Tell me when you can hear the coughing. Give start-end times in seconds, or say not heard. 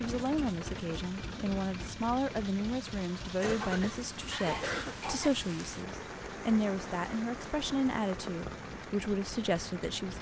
3.4-5.3.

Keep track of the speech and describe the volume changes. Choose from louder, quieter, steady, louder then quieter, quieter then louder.
steady.